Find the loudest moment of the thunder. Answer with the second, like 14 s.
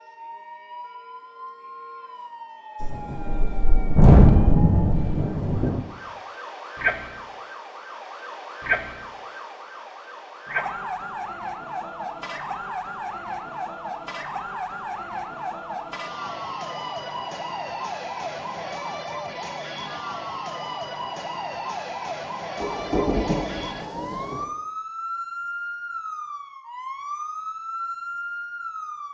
4 s.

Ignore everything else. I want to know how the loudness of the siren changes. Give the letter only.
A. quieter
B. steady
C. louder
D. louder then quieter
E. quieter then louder
C.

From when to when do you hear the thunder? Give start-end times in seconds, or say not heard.
2.8-5.8, 22.6-24.4.